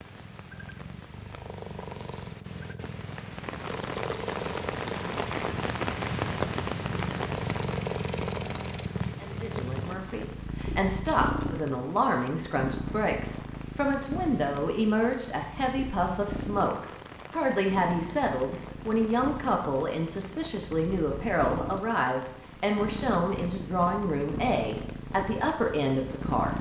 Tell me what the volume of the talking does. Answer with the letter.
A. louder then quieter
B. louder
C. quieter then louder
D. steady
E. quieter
D.